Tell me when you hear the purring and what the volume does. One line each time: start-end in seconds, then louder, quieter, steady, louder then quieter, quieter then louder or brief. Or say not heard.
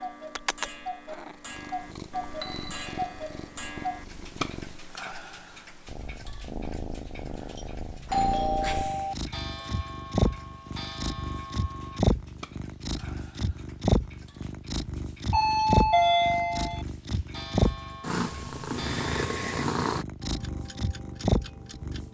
0.1-22.0 louder.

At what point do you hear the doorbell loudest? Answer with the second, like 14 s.
16 s.